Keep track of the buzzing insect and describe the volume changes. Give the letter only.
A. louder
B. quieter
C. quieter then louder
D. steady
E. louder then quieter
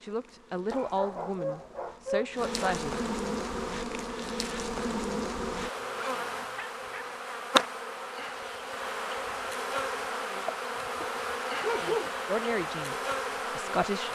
A.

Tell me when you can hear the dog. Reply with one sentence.
You can hear the dog from 0.7 to 2.5 s, from 5.8 to 7.1 s and from 11.0 to 12.1 s.